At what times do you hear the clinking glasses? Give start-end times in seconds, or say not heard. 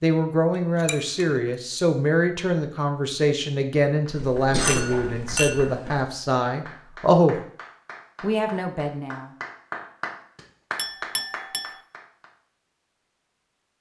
0.6-1.4, 4.7-5.8, 10.8-11.8.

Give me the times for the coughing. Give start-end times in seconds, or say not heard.
4.1-6.0.